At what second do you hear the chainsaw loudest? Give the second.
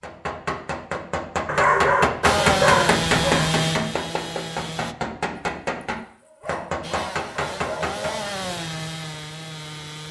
3 s.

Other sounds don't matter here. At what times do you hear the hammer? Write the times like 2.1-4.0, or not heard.
0.0-8.3.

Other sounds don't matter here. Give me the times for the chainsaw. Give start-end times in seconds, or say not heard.
2.2-5.0, 6.8-10.0.